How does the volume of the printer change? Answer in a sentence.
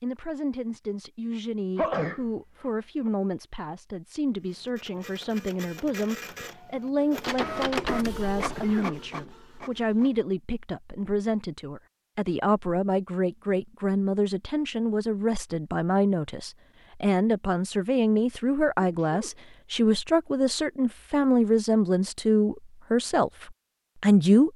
The volume of the printer goes up, then down.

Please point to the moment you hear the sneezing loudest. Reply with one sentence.
The loudest moment of the sneezing is at 2 seconds.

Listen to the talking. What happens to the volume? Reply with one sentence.
The volume of the talking goes up.